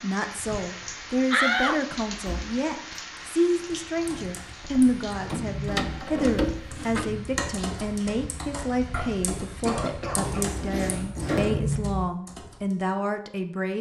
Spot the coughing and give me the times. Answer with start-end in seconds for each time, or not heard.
9.7-10.4.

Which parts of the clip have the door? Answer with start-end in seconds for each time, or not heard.
1.3-3.0, 4.6-7.2, 10.3-11.6.